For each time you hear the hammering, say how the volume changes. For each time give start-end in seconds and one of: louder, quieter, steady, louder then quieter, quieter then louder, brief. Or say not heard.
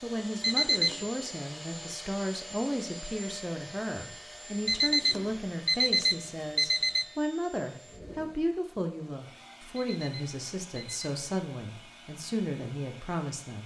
not heard.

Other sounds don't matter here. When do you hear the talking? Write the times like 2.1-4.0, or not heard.
0.0-13.6.